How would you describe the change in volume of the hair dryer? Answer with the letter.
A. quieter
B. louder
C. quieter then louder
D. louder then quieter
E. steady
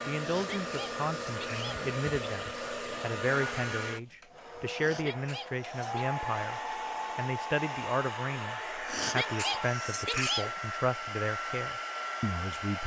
E.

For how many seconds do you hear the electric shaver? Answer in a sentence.
You can't hear the electric shaver here.